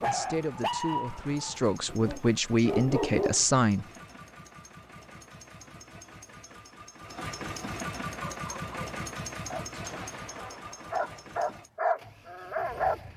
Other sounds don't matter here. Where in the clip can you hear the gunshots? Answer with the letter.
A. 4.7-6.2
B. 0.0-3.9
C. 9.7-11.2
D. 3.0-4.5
C.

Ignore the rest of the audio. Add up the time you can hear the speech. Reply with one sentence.
The speech can be heard for 4 seconds in total.